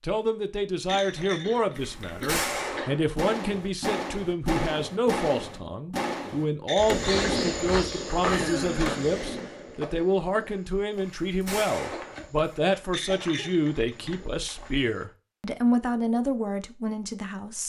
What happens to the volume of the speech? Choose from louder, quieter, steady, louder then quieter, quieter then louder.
steady.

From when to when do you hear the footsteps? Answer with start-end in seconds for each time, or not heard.
6.8-15.1.